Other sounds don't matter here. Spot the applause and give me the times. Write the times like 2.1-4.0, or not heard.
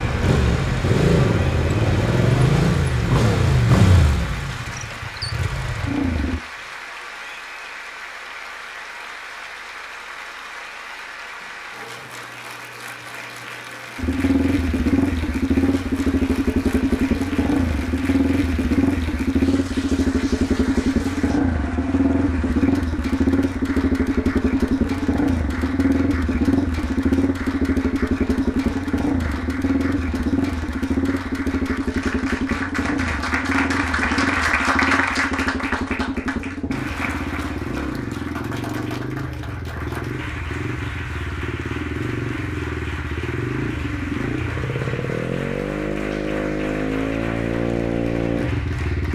0.0-49.1.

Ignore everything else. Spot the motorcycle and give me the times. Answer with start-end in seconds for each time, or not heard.
0.0-6.4, 13.9-49.1.